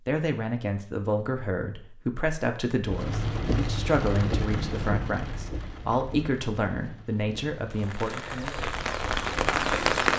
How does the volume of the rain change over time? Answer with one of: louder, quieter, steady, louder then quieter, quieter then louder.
quieter then louder.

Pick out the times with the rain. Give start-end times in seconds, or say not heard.
2.9-10.1.